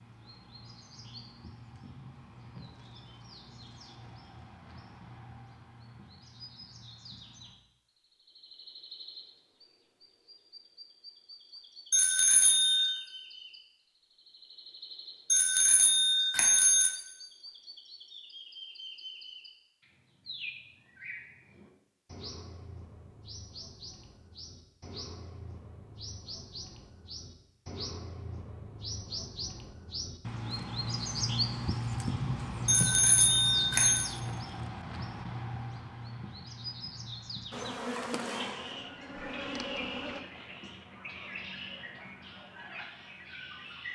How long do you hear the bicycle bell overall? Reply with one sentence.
The bicycle bell can be heard for 4 seconds in total.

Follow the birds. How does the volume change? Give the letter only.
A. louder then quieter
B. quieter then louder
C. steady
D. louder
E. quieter
A.